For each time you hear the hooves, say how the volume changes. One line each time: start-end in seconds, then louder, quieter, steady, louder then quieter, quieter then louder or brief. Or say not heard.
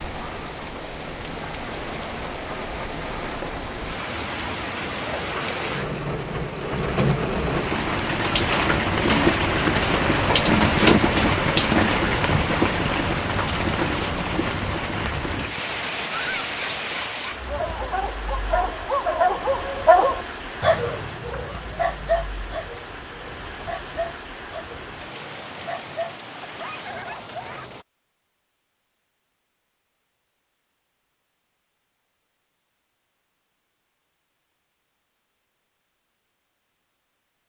not heard.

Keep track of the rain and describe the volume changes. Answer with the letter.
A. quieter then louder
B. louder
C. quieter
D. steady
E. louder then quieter
E.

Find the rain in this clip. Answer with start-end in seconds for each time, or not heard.
0.0-27.9.